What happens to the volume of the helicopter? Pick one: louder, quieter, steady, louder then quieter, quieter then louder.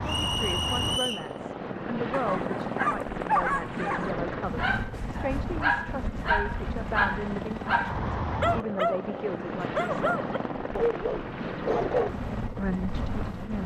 steady.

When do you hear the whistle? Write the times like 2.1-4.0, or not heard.
0.1-1.3.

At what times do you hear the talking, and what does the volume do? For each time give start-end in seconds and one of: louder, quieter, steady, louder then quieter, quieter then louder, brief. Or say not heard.
0.0-10.2 steady
12.6-13.6 brief.